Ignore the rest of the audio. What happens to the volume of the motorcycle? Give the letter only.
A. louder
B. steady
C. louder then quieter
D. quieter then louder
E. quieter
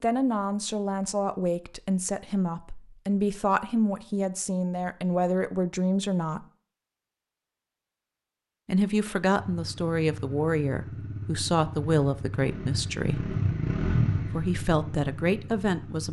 C.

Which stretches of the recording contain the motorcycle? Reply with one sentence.
The motorcycle can be heard from 9.3 to 16.0 s.